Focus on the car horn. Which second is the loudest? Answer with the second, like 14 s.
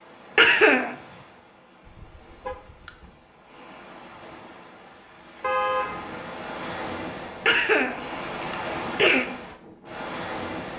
6 s.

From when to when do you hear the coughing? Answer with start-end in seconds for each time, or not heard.
0.3-0.9, 7.5-9.3.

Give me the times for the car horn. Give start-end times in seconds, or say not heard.
1.9-3.1, 5.4-6.1.